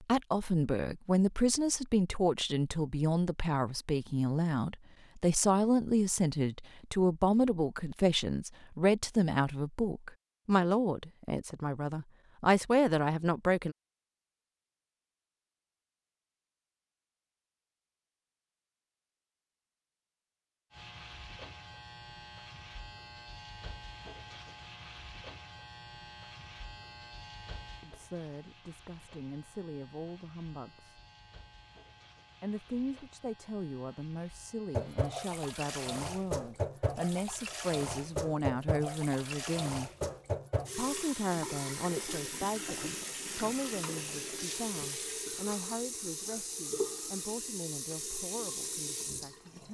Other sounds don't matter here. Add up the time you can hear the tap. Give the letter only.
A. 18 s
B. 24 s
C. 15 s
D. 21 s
C.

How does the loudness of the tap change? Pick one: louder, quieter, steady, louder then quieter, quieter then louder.
steady.